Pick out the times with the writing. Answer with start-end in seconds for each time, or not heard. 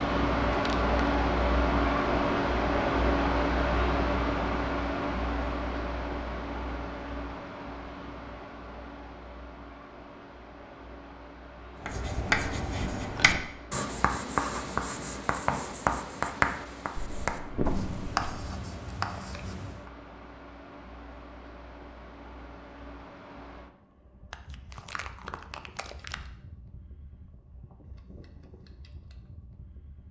11.8-19.9.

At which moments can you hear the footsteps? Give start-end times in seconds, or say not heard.
not heard.